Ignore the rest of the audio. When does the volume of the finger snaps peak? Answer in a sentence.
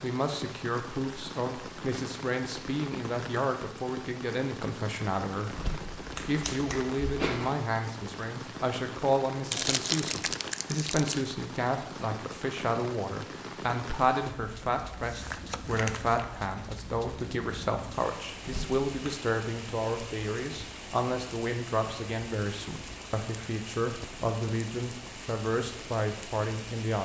The loudest moment of the finger snaps is at 7 seconds.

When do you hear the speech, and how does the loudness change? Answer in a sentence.
You can hear the speech from 0.0 to 27.0 s, at a steady volume.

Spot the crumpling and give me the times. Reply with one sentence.
The crumpling can be heard from 9.5 to 11.3 s and from 15.0 to 16.2 s.